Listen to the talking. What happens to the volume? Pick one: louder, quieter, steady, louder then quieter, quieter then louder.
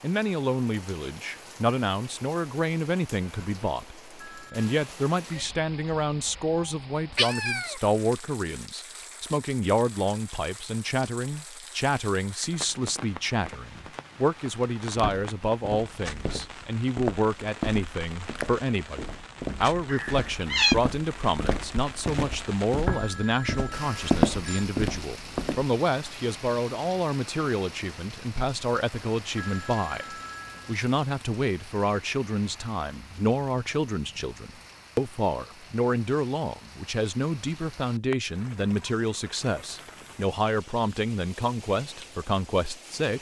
steady.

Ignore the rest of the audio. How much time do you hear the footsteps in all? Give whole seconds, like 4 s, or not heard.
11 s.